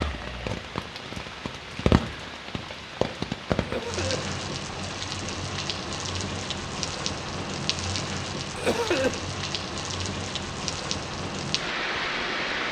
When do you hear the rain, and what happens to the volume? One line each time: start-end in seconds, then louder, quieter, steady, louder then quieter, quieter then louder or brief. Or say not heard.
0.0-12.6 steady.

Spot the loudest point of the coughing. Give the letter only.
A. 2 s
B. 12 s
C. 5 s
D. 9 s
D.